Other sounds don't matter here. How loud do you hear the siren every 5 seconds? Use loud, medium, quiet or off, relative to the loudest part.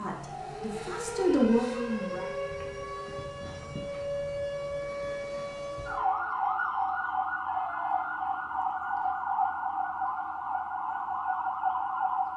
medium, loud, loud.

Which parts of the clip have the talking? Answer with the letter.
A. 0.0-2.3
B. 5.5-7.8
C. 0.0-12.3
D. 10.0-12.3
A.